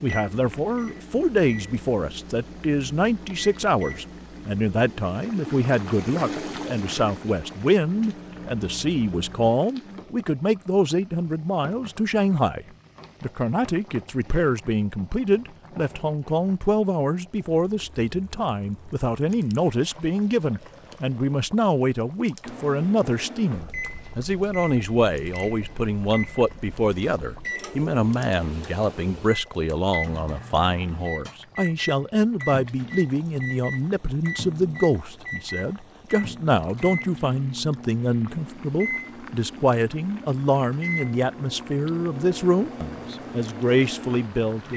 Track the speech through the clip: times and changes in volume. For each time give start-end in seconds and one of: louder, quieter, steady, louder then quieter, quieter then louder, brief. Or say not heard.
0.0-44.7 steady.